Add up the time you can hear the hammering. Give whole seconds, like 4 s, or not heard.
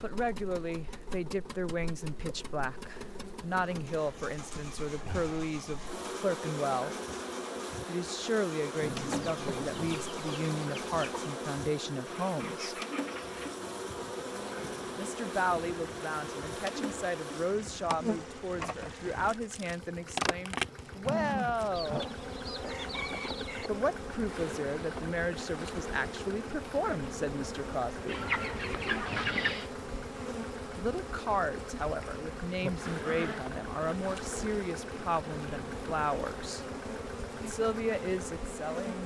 not heard.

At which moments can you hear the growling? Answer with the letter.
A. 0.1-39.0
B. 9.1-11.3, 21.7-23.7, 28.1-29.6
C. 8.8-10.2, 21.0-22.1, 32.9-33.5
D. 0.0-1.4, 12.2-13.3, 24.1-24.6
C.